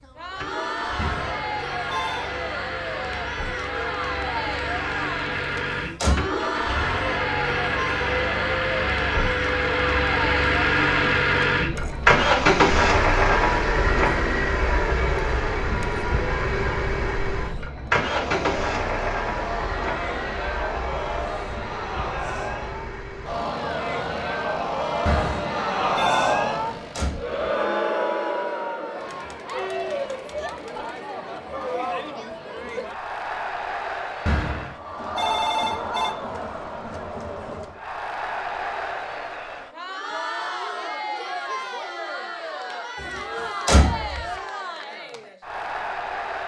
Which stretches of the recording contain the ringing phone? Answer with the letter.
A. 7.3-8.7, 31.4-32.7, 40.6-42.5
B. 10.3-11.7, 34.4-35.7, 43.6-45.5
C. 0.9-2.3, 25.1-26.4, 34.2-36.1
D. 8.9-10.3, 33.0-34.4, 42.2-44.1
C.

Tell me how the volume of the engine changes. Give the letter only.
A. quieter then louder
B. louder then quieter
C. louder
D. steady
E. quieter
B.